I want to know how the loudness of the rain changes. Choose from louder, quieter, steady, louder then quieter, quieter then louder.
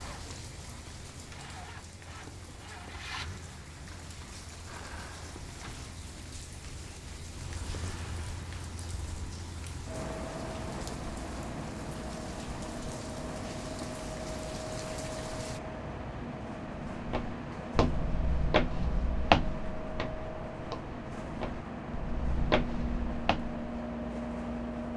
steady.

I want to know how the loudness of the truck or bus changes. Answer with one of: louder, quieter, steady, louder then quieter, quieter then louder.
louder.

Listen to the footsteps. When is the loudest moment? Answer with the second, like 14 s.
19 s.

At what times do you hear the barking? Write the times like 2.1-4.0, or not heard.
not heard.